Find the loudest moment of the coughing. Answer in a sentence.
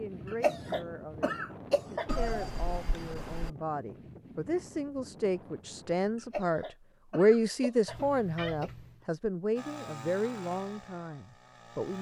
The loudest moment of the coughing is at 1 second.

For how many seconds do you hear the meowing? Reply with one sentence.
You can hear the meowing for 3 seconds altogether.